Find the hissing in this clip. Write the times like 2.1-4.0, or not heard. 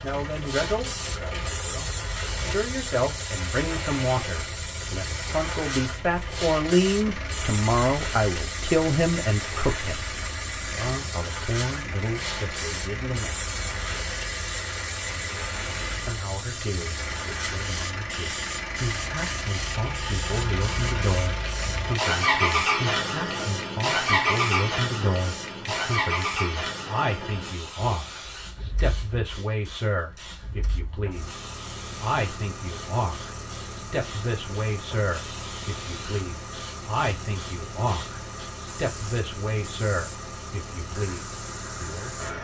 0.2-42.3.